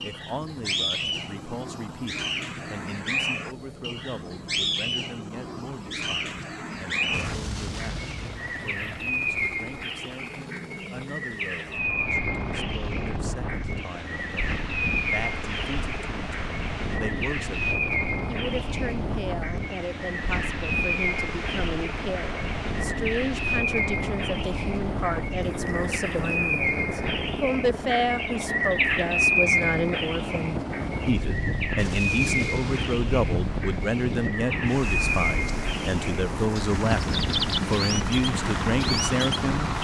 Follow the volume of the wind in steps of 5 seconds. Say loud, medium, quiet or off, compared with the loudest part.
off, off, loud, loud, loud, loud, loud, loud.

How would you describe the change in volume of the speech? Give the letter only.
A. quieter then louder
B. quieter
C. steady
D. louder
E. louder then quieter
D.